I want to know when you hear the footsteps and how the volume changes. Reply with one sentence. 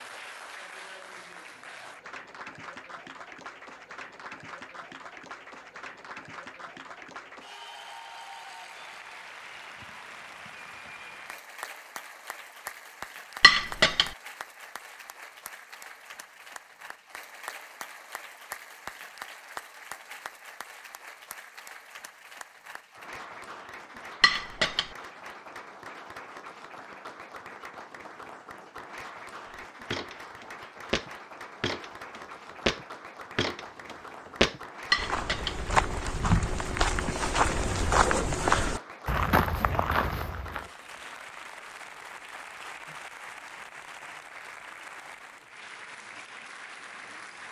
The footsteps can be heard from 29.5 to 40.6 s, getting louder.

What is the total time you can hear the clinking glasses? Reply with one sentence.
You can hear the clinking glasses for 2 seconds altogether.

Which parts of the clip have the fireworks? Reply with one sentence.
The fireworks can't be heard in this clip.